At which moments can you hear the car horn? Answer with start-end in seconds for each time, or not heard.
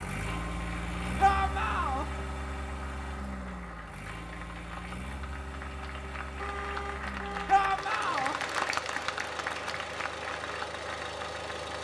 6.3-7.7.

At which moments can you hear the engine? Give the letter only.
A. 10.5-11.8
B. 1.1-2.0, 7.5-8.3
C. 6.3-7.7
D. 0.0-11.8
D.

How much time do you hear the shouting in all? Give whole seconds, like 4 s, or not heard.
2 s.